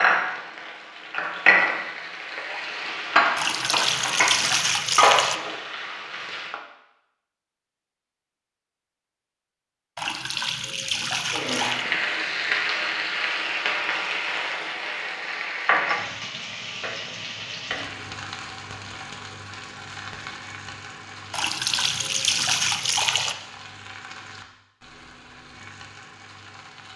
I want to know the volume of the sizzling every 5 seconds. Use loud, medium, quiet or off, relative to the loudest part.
loud, loud, loud, medium, quiet, quiet.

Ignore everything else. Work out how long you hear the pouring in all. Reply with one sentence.
The pouring can be heard for 6 seconds in total.